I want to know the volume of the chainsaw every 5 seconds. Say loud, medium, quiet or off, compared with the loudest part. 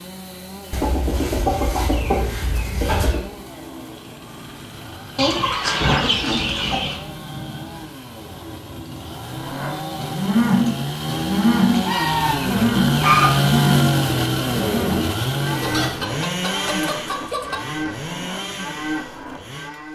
quiet, quiet, loud, medium.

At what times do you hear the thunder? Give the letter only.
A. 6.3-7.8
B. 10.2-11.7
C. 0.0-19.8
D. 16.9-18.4
A.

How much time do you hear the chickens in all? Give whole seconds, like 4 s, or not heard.
8 s.